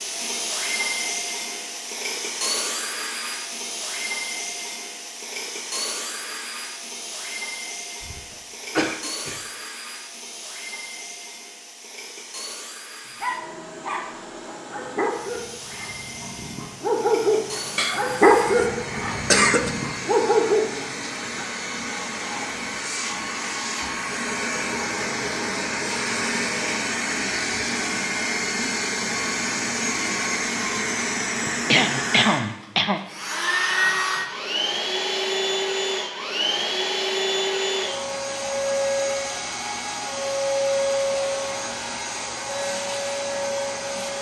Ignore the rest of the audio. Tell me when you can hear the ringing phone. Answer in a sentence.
You can't hear the ringing phone here.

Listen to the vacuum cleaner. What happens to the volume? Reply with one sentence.
The loudness of the vacuum cleaner goes down, then up.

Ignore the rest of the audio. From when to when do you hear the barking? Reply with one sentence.
You can hear the barking from 13.2 to 21.4 s.